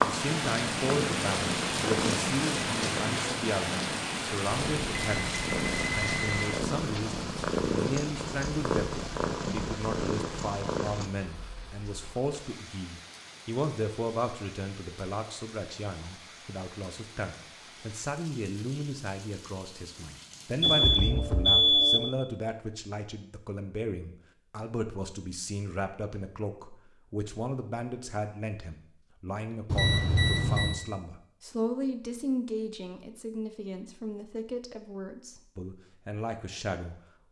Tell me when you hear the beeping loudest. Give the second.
22 s.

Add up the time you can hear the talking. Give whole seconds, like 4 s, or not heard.
37 s.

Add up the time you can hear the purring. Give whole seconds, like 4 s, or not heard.
11 s.